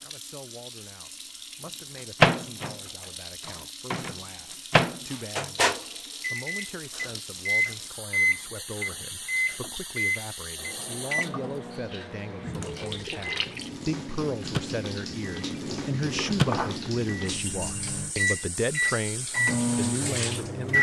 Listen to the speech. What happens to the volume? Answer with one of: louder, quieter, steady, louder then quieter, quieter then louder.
louder.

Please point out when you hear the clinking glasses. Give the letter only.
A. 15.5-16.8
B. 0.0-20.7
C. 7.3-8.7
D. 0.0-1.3
A.